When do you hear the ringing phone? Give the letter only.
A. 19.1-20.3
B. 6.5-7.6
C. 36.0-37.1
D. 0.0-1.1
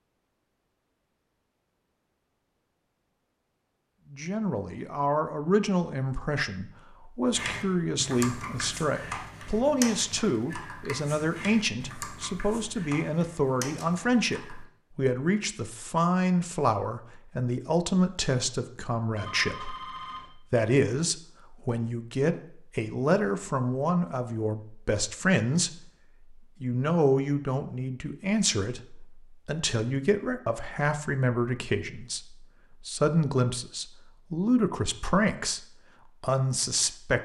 A.